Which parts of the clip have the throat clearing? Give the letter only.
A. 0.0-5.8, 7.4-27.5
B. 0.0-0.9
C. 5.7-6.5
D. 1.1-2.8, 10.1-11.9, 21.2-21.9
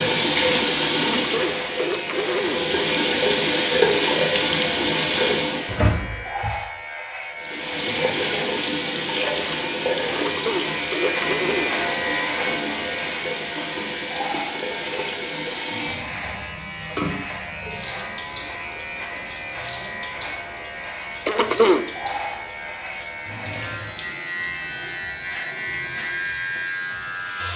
D.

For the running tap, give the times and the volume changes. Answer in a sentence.
The running tap can be heard from 0.0 to 5.8 s, getting quieter then louder; and from 7.4 to 27.5 s, getting quieter.